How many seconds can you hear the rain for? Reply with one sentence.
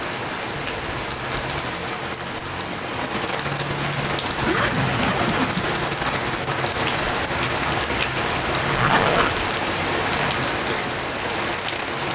You can hear the rain for 12 seconds altogether.